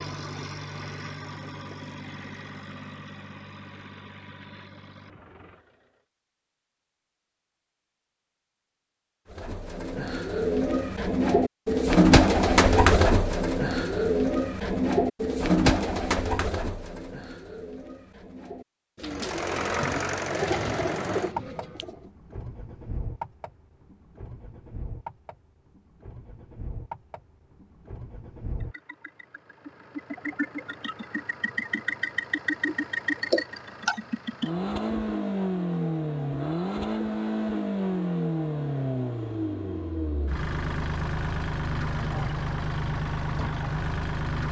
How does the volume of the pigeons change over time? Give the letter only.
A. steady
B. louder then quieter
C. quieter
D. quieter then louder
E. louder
D.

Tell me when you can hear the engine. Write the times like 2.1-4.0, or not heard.
0.0-6.0, 19.1-44.4.